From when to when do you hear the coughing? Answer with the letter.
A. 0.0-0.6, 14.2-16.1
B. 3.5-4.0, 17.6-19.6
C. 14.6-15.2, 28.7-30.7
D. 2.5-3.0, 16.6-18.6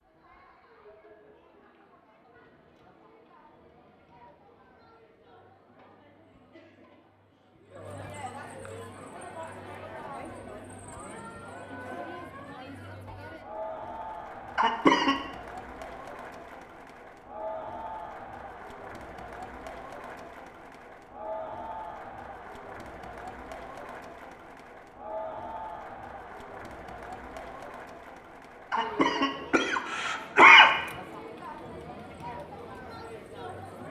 C.